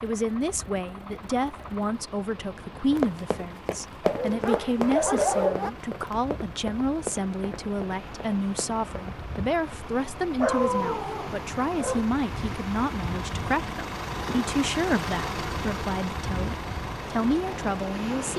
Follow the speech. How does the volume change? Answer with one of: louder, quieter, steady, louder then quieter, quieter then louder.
steady.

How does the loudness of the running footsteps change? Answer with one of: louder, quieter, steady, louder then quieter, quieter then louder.
quieter.